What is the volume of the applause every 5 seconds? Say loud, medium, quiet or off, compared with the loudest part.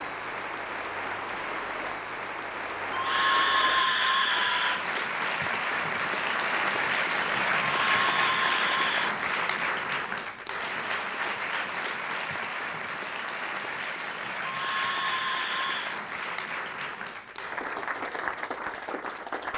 medium, loud, medium, medium.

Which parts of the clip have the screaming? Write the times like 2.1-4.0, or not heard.
2.9-4.8, 7.7-9.2, 14.4-16.0.